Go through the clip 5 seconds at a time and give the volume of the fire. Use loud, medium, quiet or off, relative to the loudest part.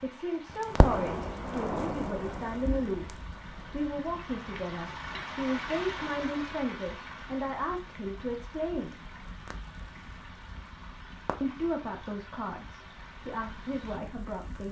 loud, quiet, quiet.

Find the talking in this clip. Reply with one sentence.
You can hear the talking from 0.0 to 9.0 s and from 11.4 to 14.6 s.